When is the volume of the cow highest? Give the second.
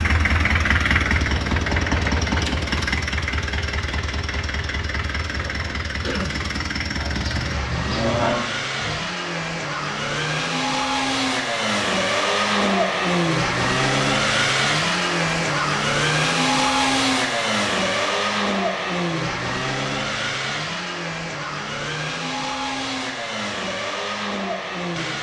8 s.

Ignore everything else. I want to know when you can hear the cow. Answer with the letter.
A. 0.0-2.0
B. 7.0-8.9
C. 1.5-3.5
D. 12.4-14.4
B.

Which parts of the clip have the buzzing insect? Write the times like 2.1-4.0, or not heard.
not heard.